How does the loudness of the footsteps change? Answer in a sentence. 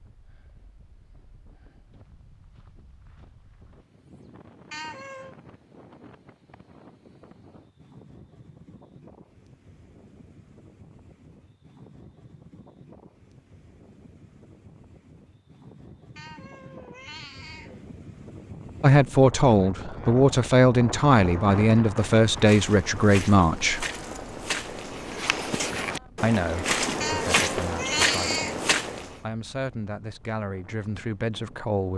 The loudness of the footsteps goes up.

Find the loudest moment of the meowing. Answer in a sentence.
The loudest moment of the meowing is at 28 seconds.